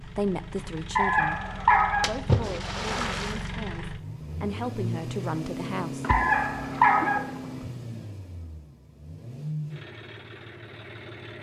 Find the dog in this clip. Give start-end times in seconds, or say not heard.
0.9-2.0, 6.0-7.2.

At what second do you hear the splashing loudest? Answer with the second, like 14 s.
2 s.